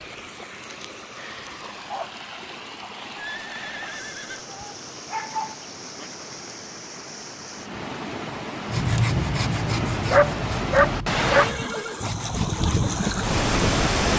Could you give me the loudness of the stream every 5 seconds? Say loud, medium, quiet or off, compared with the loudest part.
quiet, medium, loud.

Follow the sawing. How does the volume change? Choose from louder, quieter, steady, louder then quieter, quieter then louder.
quieter.